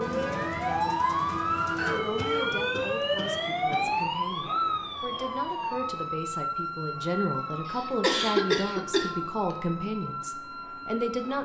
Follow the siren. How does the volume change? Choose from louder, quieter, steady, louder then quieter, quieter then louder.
quieter.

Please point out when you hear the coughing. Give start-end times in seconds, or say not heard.
1.8-3.8, 7.7-9.1.